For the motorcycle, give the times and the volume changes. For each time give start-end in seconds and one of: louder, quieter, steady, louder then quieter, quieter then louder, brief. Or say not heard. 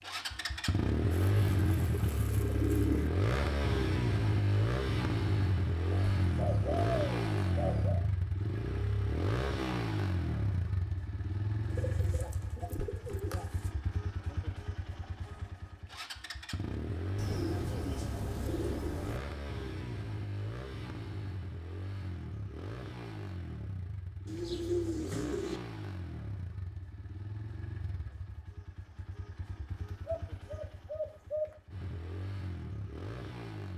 0.0-33.7 quieter.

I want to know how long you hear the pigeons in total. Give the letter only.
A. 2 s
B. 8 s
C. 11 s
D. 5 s
C.